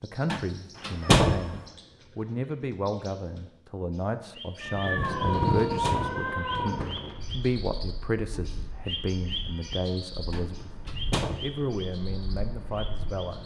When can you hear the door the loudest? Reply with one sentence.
The volume of the door peaks at 1 second.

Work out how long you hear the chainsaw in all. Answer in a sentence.
You can't hear the chainsaw here.